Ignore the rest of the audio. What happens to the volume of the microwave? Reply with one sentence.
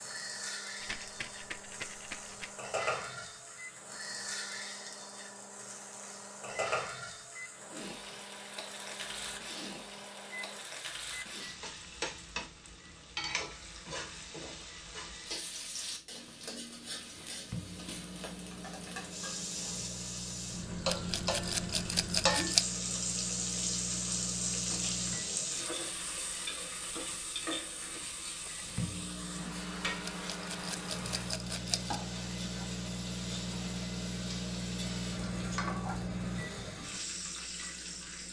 The volume of the microwave goes up.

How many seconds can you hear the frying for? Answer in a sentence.
You can hear the frying for 38 seconds altogether.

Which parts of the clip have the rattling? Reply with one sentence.
The rattling can be heard from 0.8 to 2.5 s, from 20.9 to 22.6 s and from 30.1 to 31.9 s.